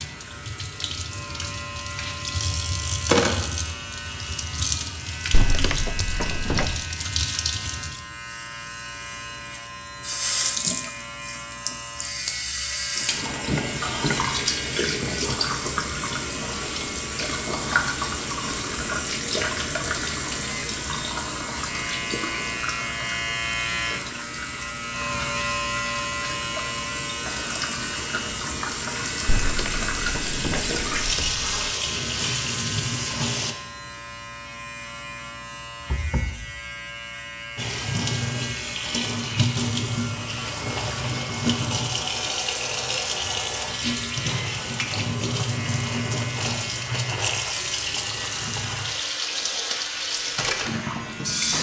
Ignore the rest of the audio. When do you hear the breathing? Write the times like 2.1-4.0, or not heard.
not heard.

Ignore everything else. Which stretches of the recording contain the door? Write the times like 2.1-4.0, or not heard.
5.3-6.8, 29.2-31.5, 35.9-36.5.